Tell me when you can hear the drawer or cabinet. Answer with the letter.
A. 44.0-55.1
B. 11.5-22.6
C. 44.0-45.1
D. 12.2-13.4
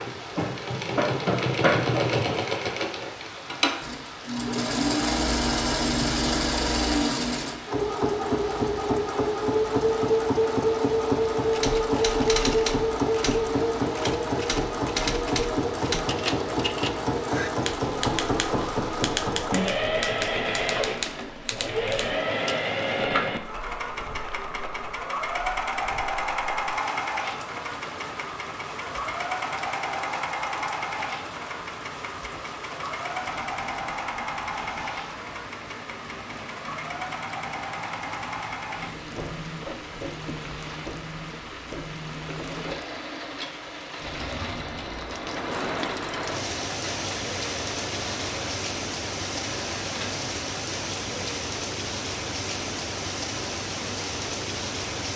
C.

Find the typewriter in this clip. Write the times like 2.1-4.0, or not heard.
11.5-22.6.